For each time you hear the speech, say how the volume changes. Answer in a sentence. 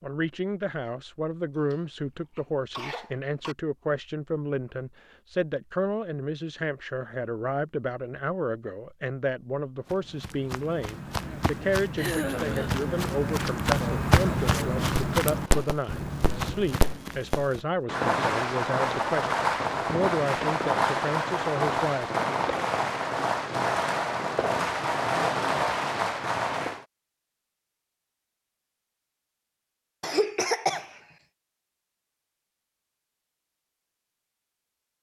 The speech can be heard from 0.0 to 22.1 s, at a steady volume.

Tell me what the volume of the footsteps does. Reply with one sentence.
The volume of the footsteps goes up, then down.